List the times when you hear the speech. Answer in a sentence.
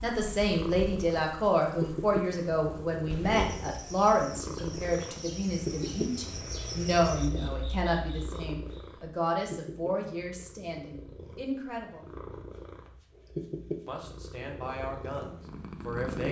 The speech can be heard from 0.0 to 12.1 s and from 13.8 to 16.2 s.